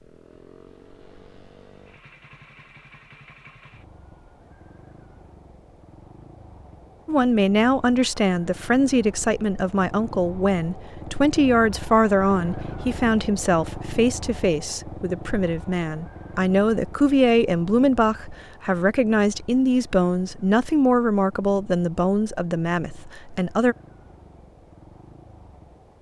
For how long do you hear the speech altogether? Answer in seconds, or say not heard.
17 s.